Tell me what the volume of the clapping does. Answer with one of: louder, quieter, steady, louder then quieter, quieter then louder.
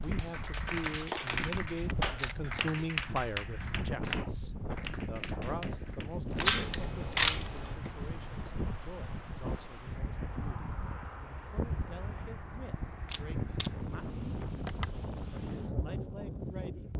quieter.